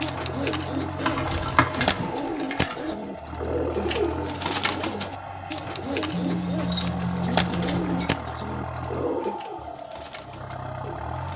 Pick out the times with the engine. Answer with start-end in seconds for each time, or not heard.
0.0-11.3.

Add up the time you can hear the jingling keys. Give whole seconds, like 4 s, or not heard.
4 s.